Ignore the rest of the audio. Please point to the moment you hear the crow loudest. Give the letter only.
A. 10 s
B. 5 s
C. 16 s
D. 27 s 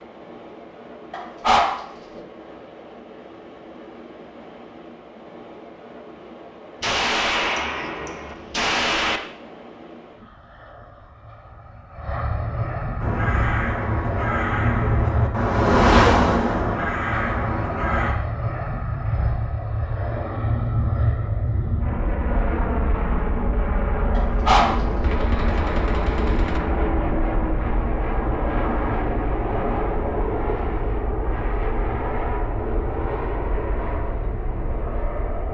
C.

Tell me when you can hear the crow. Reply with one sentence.
The crow can be heard from 13.0 to 18.1 s.